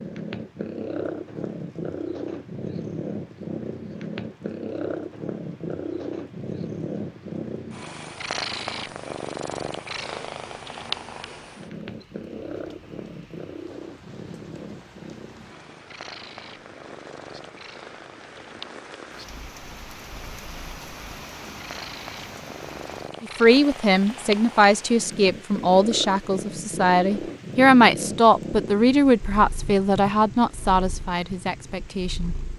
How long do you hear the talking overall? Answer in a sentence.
You can hear the talking for 9 seconds altogether.